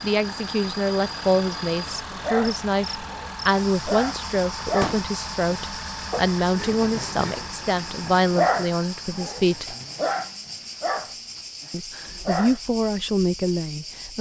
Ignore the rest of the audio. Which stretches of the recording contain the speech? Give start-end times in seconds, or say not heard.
0.0-9.8, 11.7-14.1.